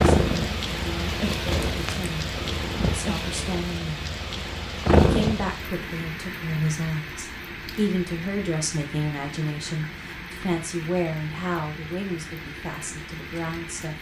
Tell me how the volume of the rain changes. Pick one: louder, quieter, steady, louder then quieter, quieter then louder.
quieter.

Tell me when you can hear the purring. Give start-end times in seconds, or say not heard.
0.0-5.5.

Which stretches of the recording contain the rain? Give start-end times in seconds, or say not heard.
0.0-13.9.